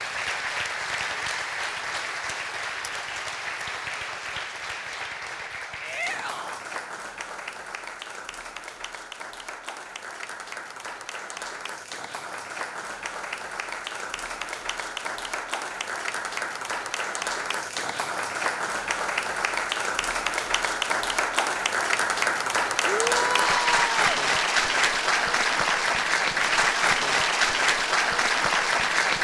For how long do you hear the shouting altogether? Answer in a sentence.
You can hear the shouting for 2 seconds altogether.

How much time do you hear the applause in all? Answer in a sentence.
The applause can be heard for 29 seconds in total.